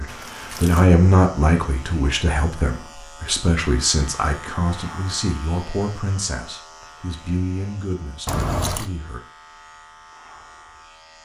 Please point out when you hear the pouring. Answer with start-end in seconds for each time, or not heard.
0.1-0.8, 8.2-8.9.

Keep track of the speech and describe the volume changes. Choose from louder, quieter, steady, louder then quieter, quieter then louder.
quieter.